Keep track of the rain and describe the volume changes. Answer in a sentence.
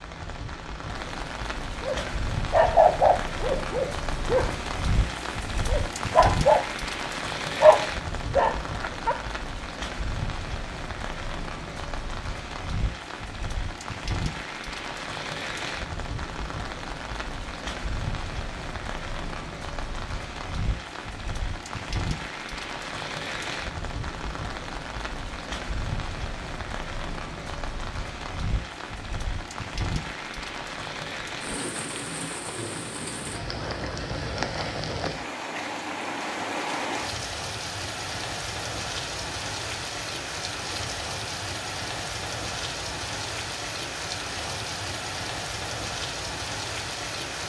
The volume of the rain stays about the same.